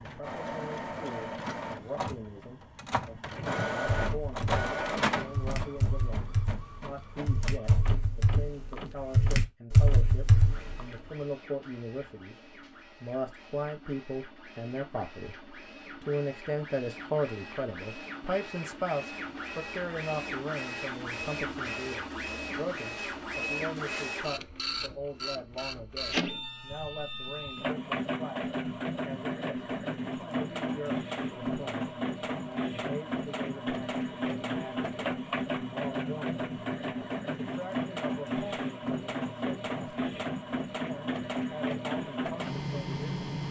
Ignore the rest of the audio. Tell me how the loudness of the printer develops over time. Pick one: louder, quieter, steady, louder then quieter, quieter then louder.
quieter then louder.